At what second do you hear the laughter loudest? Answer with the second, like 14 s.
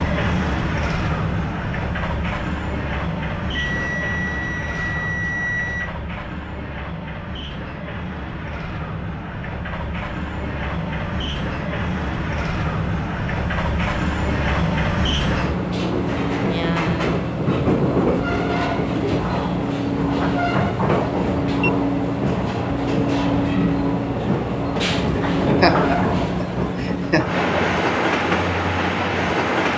26 s.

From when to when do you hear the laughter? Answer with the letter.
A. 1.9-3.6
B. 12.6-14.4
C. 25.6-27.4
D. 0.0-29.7
C.